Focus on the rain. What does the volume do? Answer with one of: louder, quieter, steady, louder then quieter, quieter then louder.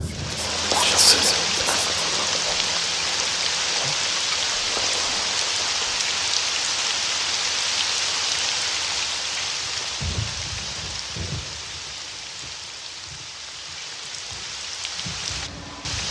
quieter.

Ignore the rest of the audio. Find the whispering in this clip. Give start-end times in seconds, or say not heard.
0.0-6.1.